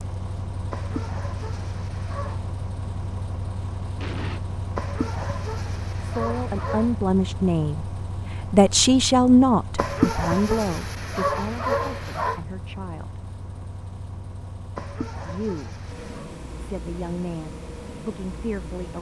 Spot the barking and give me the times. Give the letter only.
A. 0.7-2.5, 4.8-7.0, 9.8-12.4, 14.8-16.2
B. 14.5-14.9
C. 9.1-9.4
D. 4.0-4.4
A.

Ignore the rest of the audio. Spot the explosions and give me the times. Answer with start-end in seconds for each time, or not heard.
4.0-4.4.